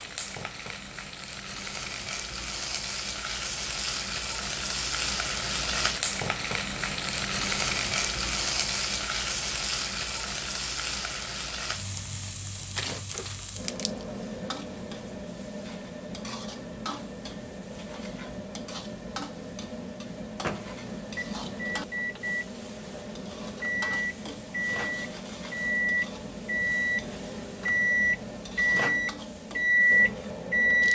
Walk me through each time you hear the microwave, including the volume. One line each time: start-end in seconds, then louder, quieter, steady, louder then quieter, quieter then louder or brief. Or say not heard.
20.4-30.8 louder.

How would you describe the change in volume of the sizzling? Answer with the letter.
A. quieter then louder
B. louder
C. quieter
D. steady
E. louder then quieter
C.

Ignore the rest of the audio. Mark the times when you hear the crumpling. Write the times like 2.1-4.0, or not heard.
12.7-14.1.